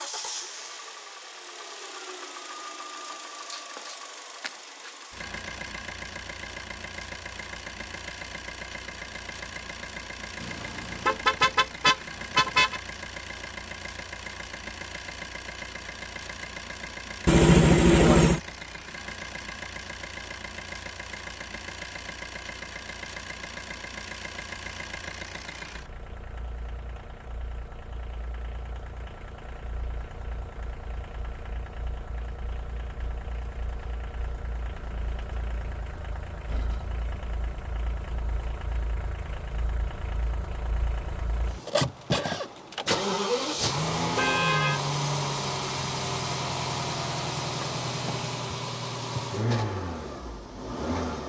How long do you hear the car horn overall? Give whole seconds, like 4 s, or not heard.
4 s.